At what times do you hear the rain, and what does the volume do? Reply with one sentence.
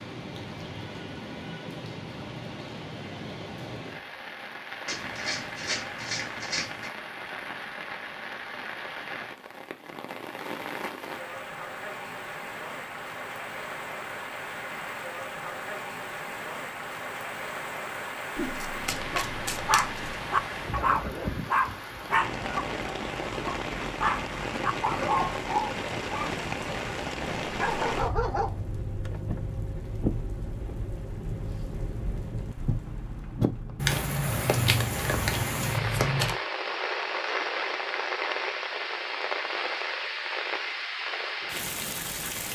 The rain can be heard from 0.0 to 42.5 s, getting louder.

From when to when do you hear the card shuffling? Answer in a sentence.
You can hear the card shuffling from 4.8 to 6.9 s, from 18.4 to 20.1 s and from 33.8 to 36.4 s.